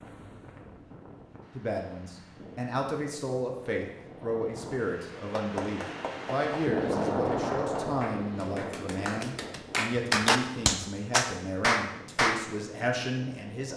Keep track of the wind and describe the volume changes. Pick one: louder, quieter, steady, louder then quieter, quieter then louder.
louder then quieter.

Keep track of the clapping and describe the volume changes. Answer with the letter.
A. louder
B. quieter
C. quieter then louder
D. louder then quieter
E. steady
A.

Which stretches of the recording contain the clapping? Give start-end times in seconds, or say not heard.
5.3-12.4.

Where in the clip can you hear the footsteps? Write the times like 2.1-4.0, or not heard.
not heard.